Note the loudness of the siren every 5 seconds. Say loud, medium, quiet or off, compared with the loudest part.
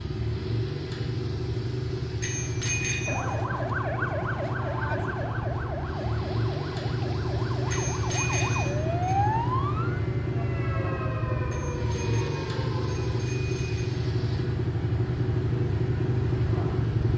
loud, loud, medium, off.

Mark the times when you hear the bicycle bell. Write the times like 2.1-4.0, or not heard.
2.2-3.2, 7.7-9.2, 11.5-13.9.